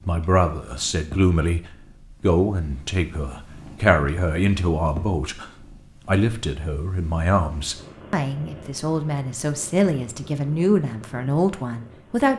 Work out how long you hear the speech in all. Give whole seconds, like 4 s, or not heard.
12 s.